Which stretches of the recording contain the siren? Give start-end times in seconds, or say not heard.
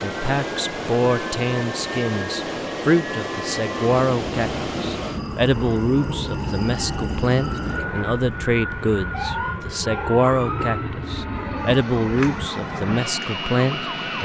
0.0-14.2.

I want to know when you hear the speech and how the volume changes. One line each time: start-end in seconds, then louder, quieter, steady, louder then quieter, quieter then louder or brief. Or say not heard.
0.0-14.2 steady.